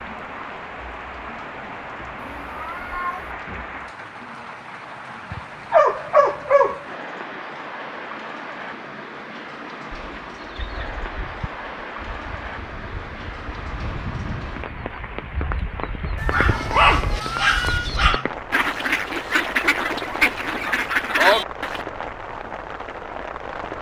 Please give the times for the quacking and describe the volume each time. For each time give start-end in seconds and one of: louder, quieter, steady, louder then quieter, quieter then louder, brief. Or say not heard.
9.9-21.9 louder.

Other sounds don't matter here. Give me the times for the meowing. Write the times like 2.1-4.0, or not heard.
2.1-3.4, 16.1-17.9.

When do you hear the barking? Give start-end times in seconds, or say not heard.
5.3-6.8, 16.3-18.3.